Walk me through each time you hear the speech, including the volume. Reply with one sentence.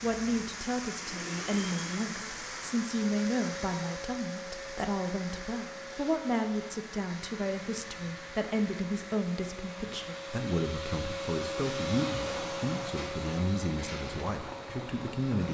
The speech can be heard from 0.0 to 15.4 s, at a steady volume.